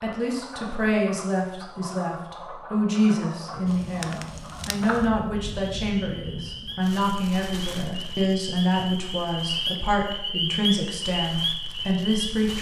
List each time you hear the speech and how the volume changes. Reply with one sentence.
The speech can be heard from 0.0 to 12.5 s, at a steady volume.